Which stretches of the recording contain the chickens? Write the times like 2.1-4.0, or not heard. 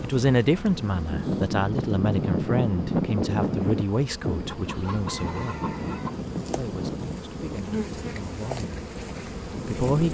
4.7-6.2.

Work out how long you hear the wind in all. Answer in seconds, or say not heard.
10 s.